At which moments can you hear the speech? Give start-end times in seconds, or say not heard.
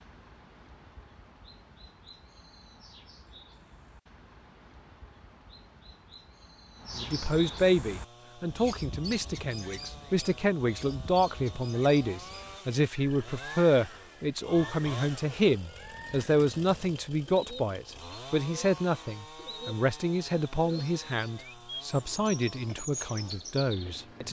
7.0-24.2.